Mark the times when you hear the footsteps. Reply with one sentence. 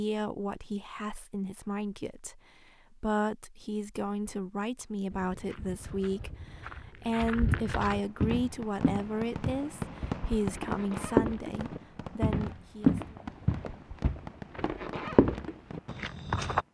You can hear the footsteps from 5.1 to 16.6 s.